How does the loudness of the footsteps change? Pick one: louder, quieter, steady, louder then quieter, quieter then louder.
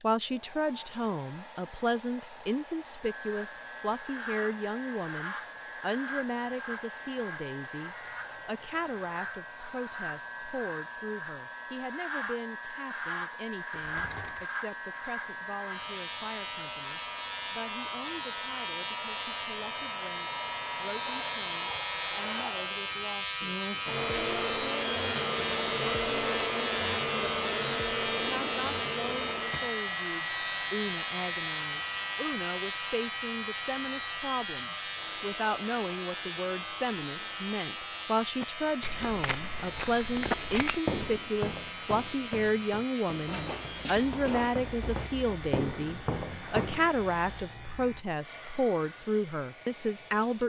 quieter then louder.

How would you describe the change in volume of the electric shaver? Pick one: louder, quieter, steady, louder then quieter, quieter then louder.
louder then quieter.